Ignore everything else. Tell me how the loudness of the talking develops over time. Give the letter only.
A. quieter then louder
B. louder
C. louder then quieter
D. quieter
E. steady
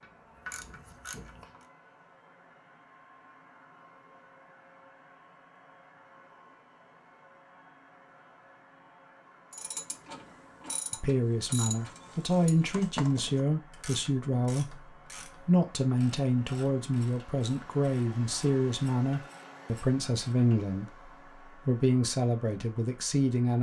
E.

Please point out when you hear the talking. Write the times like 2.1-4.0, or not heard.
10.9-14.8, 15.4-23.5.